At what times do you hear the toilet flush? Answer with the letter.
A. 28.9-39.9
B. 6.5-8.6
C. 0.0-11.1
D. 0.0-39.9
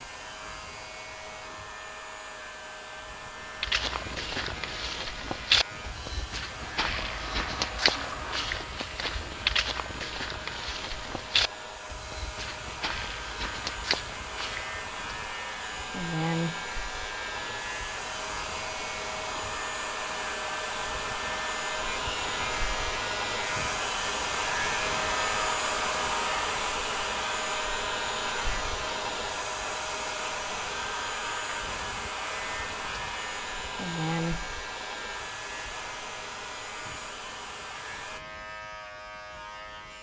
B.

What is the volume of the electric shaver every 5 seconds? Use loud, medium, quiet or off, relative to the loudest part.
medium, medium, medium, loud, loud, loud, loud, medium.